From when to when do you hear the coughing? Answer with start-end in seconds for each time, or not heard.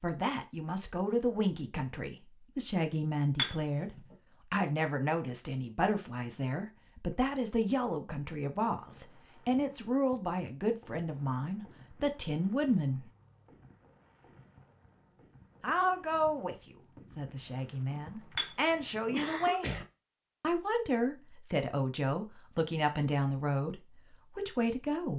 18.8-19.9.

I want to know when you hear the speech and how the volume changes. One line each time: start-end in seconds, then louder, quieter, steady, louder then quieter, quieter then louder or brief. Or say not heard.
0.0-13.1 steady
15.6-19.8 quieter then louder
20.4-25.1 steady.